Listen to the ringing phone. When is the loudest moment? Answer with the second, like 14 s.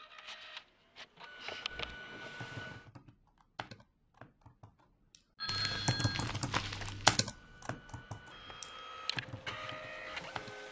6 s.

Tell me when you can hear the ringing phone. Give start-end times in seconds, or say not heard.
5.3-6.9.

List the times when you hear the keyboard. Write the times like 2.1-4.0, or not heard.
1.7-10.6.